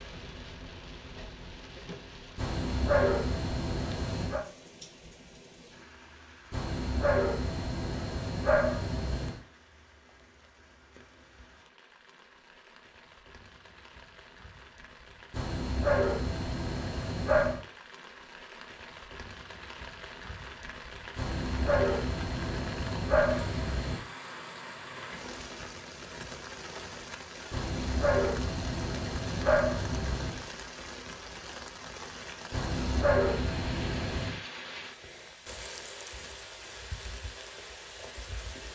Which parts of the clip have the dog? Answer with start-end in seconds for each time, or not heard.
2.4-4.5, 6.5-9.4, 15.3-17.6, 21.1-24.1, 27.5-30.4, 32.5-34.4.